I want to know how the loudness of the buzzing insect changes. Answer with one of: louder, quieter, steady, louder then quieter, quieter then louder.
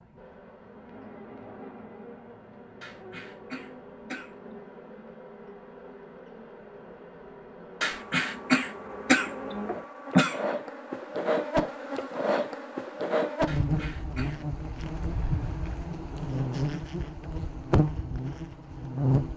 louder.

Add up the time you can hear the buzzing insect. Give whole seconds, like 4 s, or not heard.
19 s.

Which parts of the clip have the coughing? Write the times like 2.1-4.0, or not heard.
2.8-4.3, 7.8-10.4, 13.4-14.4.